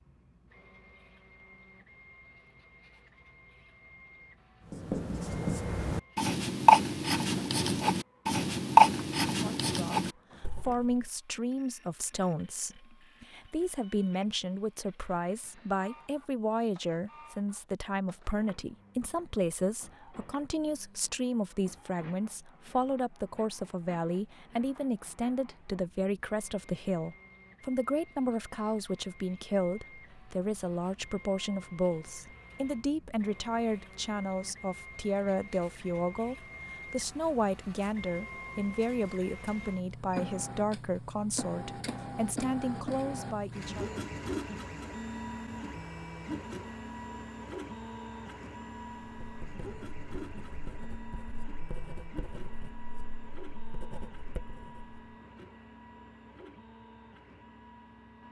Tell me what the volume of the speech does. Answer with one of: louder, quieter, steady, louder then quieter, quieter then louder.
steady.